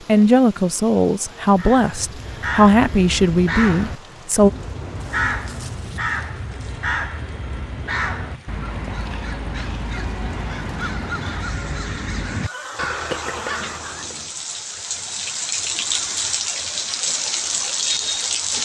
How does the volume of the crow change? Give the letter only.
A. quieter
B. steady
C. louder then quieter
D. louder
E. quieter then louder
B.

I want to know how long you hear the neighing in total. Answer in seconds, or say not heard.
4 s.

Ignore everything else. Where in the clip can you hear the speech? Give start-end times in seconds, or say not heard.
0.1-4.5.